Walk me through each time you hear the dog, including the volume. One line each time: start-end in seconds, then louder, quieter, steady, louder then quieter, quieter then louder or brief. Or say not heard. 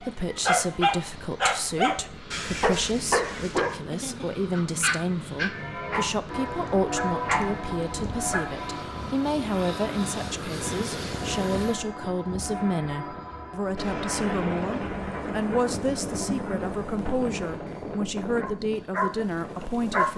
0.0-8.5 quieter
17.4-20.1 brief.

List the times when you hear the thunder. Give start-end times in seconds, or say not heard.
13.8-17.6.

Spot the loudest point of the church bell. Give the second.
7 s.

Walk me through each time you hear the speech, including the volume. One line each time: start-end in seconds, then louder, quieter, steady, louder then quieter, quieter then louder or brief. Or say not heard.
0.0-20.1 steady.